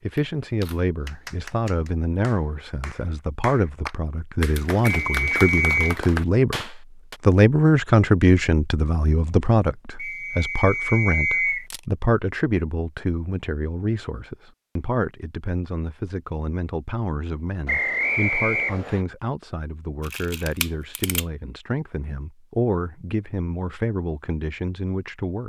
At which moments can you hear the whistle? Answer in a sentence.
You can hear the whistle from 5.0 to 6.0 s, from 9.9 to 11.7 s and from 17.6 to 19.0 s.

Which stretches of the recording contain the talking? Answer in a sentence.
The talking can be heard from 0.0 to 25.4 s.